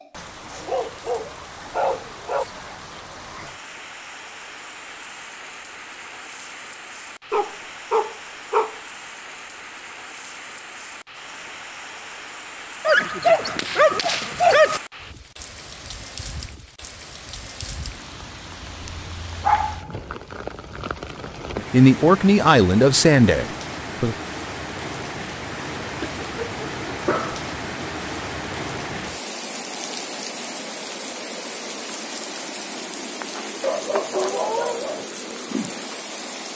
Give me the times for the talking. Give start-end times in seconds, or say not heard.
21.6-24.1.